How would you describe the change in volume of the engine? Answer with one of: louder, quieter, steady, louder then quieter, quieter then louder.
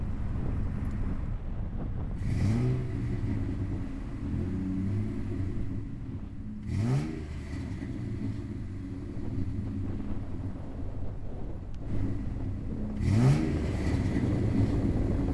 quieter then louder.